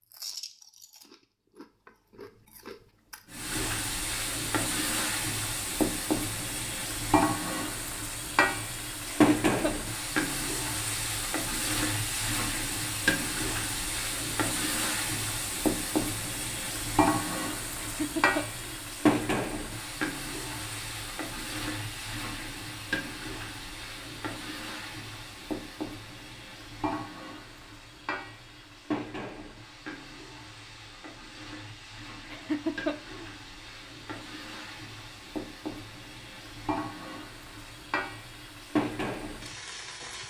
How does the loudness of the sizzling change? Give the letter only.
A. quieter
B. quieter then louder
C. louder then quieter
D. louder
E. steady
A.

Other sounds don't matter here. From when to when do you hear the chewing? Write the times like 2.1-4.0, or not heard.
0.0-3.5.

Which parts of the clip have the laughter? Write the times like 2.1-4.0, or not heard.
9.1-9.8, 17.8-18.6, 32.3-33.3.